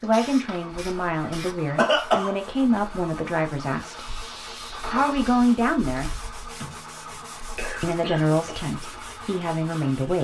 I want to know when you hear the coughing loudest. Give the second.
2 s.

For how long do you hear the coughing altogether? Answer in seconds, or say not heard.
3 s.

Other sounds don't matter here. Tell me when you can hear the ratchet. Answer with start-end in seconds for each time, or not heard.
not heard.